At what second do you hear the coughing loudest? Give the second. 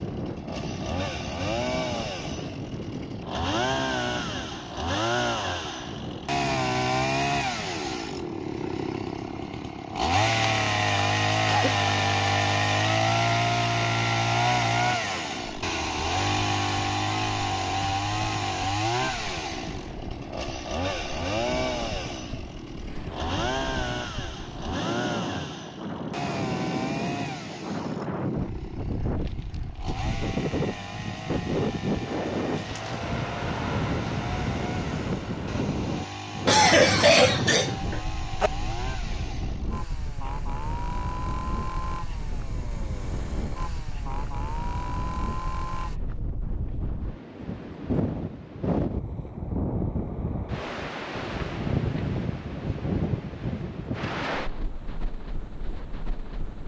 37 s.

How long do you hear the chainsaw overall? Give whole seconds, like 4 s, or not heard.
46 s.